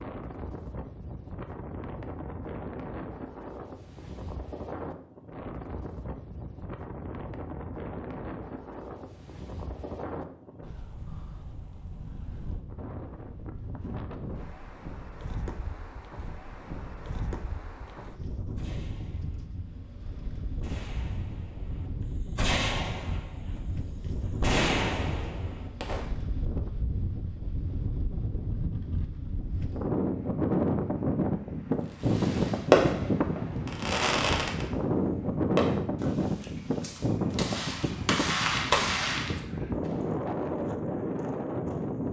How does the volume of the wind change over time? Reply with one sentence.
The loudness of the wind goes up.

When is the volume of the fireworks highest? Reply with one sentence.
The loudest moment of the fireworks is at 33 seconds.